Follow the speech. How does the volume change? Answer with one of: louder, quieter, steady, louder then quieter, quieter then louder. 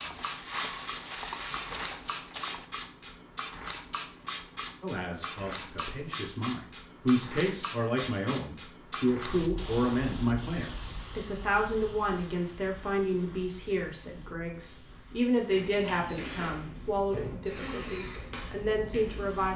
steady.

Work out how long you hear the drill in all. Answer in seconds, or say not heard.
6 s.